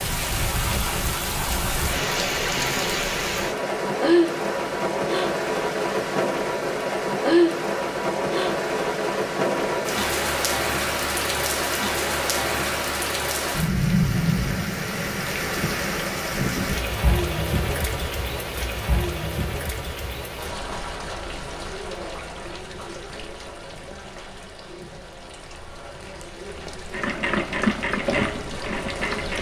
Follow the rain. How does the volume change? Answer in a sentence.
The volume of the rain goes down.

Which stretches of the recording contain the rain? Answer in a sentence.
You can hear the rain from 0.0 to 29.3 s.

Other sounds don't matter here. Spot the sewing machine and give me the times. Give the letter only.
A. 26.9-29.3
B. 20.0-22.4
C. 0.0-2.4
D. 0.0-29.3
A.